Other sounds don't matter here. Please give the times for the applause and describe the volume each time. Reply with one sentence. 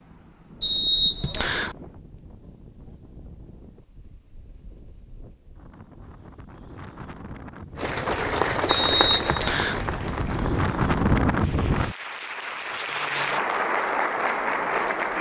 You can hear the applause from 7.8 to 15.1 s, getting quieter then louder.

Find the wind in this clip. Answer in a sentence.
You can hear the wind from 0.0 to 11.9 s.